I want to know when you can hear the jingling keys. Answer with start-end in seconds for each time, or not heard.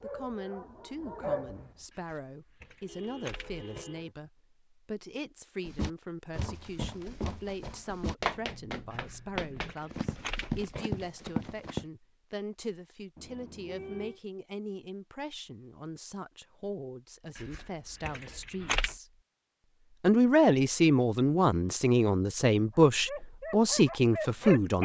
1.9-3.9, 8.9-10.8, 17.4-19.0.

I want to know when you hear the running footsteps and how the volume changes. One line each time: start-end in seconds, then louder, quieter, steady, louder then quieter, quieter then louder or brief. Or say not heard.
5.7-11.8 louder.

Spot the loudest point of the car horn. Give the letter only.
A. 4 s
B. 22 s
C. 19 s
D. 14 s
D.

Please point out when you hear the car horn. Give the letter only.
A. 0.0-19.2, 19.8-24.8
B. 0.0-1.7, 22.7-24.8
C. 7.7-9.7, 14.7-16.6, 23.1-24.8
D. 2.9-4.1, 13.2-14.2
D.